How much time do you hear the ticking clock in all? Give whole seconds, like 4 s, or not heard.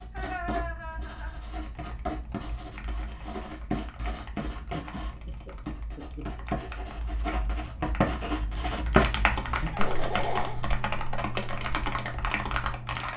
not heard.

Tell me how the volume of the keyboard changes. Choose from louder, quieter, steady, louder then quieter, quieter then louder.
louder.